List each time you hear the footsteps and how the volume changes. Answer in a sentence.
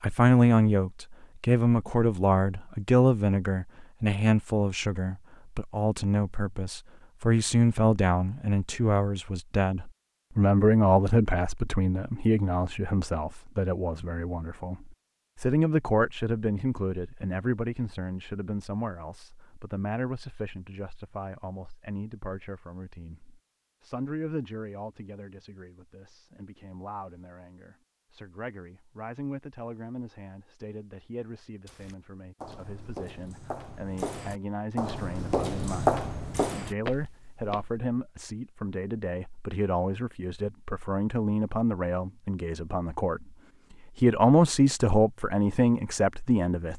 You can hear the footsteps from 31.6 to 37.8 s, getting louder then quieter.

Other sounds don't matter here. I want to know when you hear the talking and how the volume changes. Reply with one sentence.
The talking can be heard from 0.0 to 43.3 s, getting quieter then louder; and briefly from 44.0 to 46.7 s.